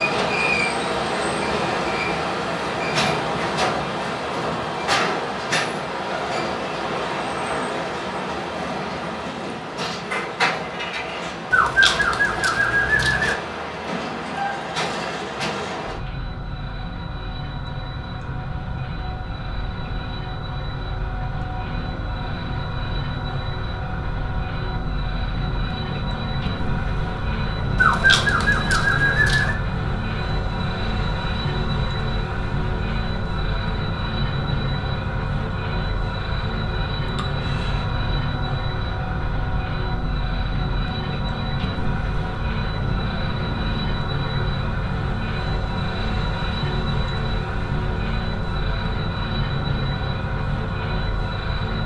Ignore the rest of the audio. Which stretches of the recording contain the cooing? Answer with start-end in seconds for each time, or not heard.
11.5-13.3, 27.8-29.6.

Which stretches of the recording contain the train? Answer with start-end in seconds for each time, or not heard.
0.0-51.8.